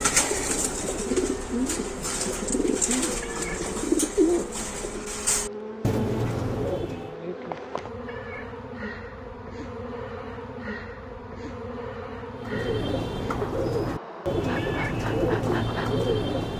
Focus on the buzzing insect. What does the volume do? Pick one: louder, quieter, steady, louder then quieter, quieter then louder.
steady.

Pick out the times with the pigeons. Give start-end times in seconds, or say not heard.
0.0-7.2, 12.3-16.5.